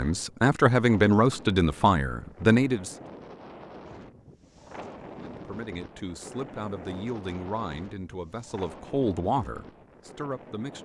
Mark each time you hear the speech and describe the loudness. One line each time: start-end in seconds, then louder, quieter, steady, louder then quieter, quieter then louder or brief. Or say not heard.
0.0-3.0 brief
5.3-10.7 louder then quieter.